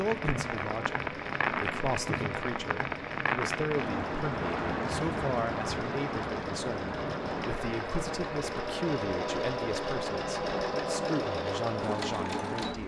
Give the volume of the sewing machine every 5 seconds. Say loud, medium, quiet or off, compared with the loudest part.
medium, loud, loud.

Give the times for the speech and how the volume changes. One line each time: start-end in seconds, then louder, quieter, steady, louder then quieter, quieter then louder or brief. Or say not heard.
0.0-12.8 steady.